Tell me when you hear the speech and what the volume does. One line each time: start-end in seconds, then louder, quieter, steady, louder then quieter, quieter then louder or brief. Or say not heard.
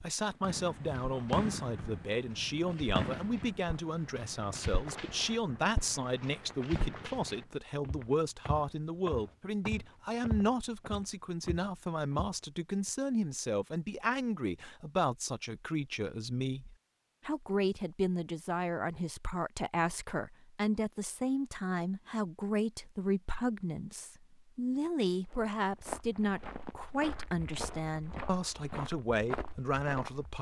0.0-30.3 steady.